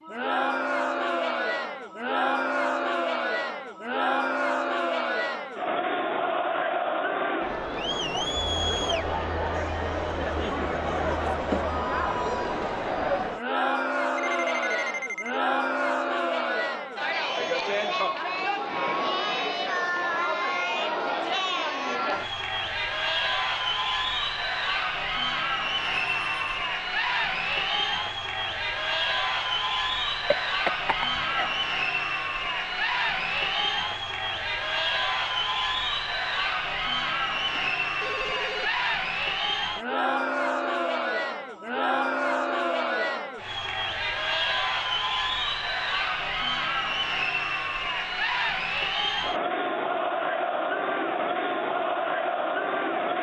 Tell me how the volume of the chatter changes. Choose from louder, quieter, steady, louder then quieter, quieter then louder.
steady.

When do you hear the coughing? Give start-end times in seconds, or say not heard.
30.2-31.5.